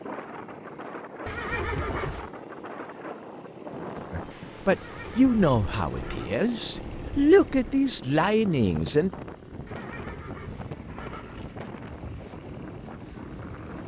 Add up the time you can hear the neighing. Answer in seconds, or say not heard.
5 s.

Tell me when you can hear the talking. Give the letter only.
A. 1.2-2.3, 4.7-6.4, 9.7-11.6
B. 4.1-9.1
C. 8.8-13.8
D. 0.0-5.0
B.